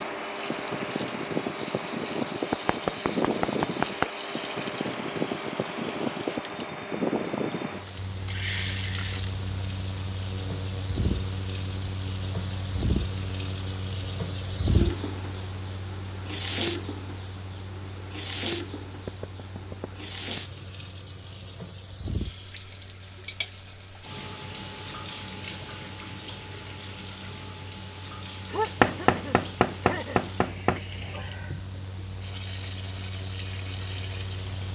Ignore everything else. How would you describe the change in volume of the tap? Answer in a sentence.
The loudness of the tap goes up, then down.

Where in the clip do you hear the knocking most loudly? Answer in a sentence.
The volume of the knocking peaks at 29 seconds.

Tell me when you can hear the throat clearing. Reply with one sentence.
The throat clearing can be heard from 28.4 to 30.2 s.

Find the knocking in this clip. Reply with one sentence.
The knocking can be heard from 2.5 to 4.1 s, from 19.1 to 19.9 s and from 28.8 to 30.8 s.